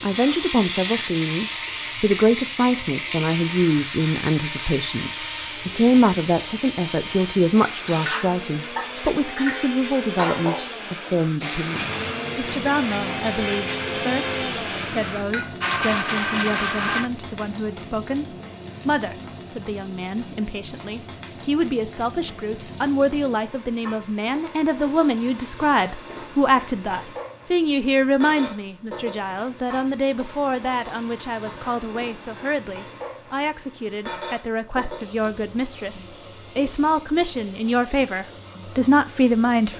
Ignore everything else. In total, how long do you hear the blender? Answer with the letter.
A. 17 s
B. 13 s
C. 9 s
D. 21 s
A.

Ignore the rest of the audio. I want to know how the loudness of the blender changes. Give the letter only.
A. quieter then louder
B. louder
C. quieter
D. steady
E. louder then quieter
B.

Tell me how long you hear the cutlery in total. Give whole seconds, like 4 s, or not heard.
not heard.